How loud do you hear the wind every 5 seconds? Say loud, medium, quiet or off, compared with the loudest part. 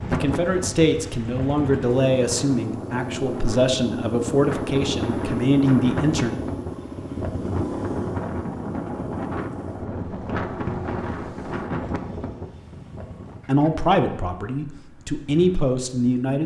loud, loud, loud, off.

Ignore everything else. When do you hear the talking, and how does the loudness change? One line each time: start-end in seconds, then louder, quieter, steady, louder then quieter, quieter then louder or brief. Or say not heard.
0.0-6.4 steady
13.4-16.4 brief.